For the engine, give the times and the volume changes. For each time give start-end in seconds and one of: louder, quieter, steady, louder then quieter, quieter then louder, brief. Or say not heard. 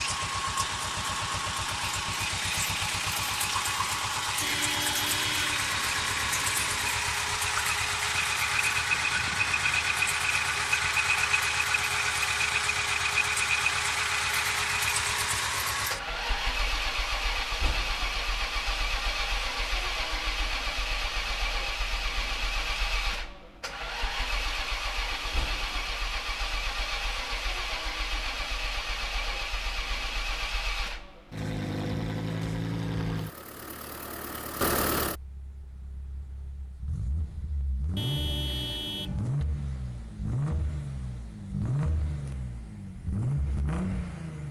0.0-44.4 quieter.